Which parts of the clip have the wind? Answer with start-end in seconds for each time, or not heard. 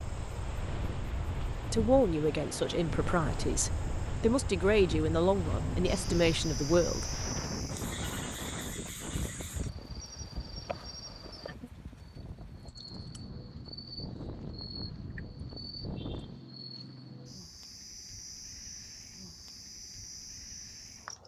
0.0-16.4.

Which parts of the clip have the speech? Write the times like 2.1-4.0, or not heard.
1.7-7.2.